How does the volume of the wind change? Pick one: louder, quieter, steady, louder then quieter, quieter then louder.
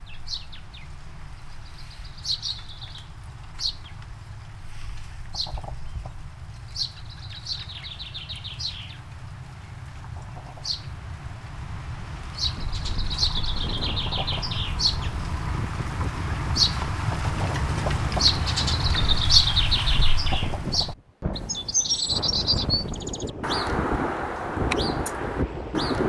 louder.